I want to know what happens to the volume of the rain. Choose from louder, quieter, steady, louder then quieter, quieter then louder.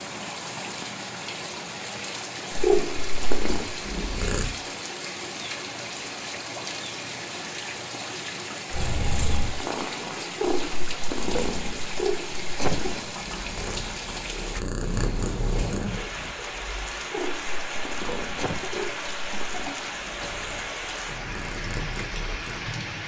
steady.